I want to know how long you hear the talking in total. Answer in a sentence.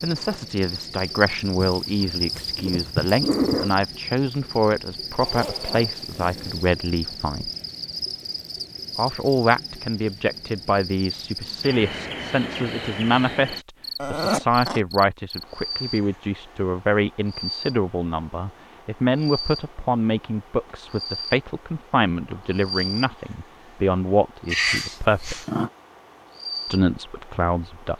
The talking can be heard for 25 seconds in total.